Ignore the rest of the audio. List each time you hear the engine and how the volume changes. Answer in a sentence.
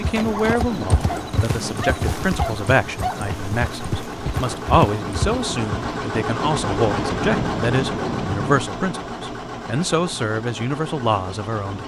The engine can be heard from 0.0 to 11.8 s, getting louder then quieter.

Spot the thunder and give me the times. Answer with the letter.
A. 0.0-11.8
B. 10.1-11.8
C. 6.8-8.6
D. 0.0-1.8
C.